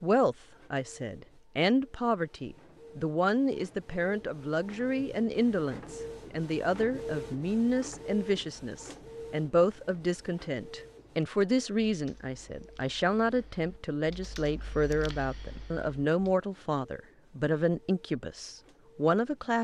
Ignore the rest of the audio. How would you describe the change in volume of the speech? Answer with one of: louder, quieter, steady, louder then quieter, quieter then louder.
steady.